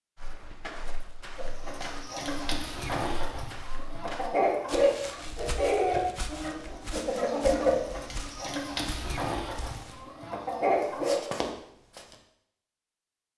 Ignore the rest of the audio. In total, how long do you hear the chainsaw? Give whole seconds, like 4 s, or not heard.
not heard.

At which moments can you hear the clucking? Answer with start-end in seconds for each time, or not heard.
1.4-11.2.